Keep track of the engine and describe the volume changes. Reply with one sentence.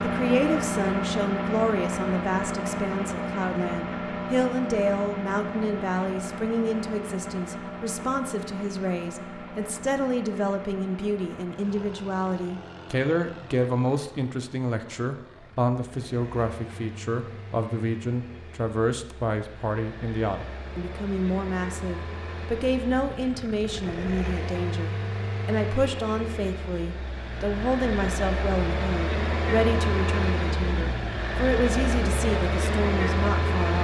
The volume of the engine goes down, then up.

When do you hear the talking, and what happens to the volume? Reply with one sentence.
You can hear the talking from 0.0 to 33.8 s, at a steady volume.